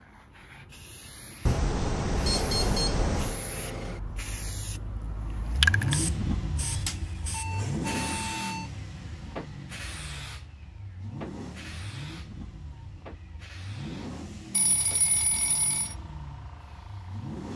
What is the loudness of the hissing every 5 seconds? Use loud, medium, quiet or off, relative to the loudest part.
quiet, loud, quiet, quiet.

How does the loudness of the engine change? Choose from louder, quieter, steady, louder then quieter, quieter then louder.
quieter.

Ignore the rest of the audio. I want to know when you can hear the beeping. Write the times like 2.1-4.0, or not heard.
1.4-3.4, 6.7-8.7, 14.5-15.9.